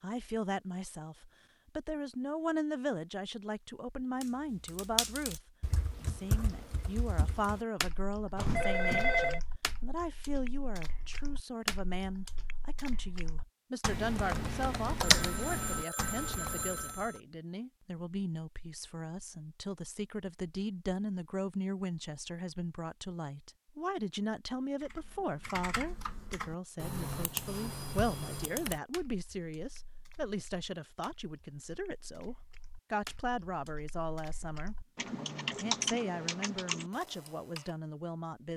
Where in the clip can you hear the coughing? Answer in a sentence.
You can't hear the coughing here.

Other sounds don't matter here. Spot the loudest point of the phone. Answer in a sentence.
The volume of the phone peaks at 9 seconds.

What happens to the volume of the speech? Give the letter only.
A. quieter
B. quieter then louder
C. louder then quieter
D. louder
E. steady
E.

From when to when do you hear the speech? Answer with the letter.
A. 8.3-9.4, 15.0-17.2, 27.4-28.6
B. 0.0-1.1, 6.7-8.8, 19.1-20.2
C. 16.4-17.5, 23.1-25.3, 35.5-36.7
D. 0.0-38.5
D.